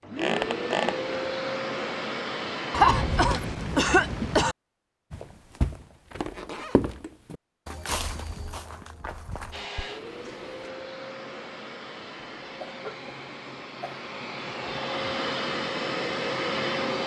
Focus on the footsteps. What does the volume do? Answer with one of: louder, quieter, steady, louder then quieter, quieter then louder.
quieter.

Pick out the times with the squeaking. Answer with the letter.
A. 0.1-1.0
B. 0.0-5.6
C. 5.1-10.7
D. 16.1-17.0
A.